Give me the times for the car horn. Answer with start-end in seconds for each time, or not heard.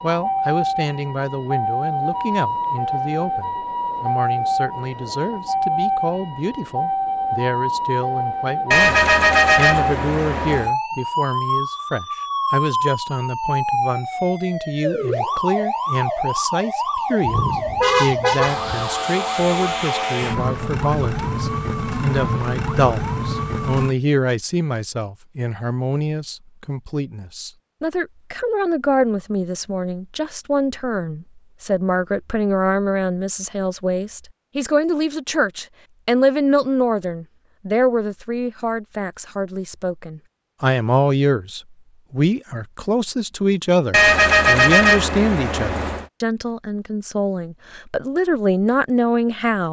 8.7-10.7, 17.2-18.9, 43.9-46.0.